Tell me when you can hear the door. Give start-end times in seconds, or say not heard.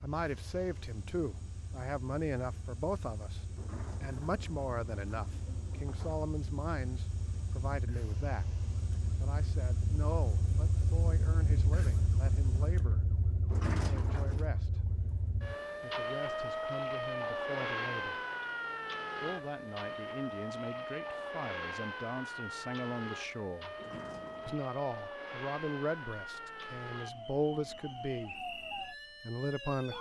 3.5-6.2, 13.4-14.4, 23.8-24.6.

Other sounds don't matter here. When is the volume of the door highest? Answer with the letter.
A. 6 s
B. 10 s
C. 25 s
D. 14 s
D.